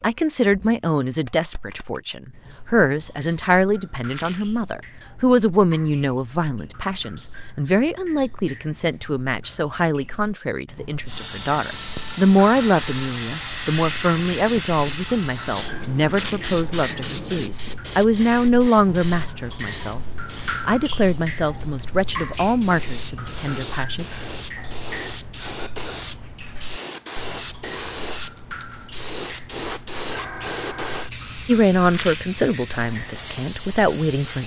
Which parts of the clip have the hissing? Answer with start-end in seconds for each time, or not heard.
11.1-34.4.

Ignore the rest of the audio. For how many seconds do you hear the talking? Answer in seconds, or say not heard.
26 s.